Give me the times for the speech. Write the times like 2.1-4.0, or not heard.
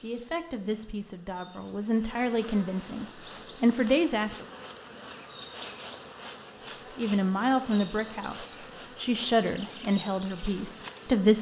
0.0-4.5, 7.0-11.3.